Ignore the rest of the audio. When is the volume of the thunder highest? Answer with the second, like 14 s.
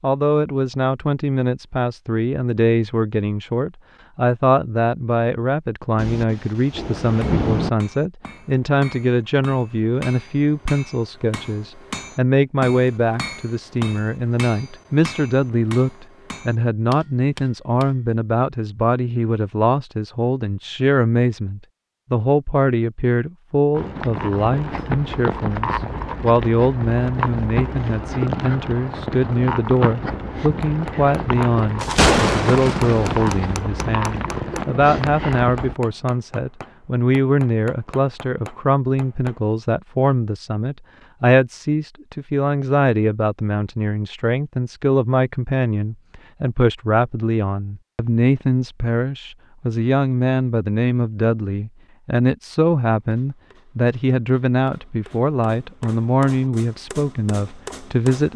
32 s.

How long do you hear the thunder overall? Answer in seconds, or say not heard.
5 s.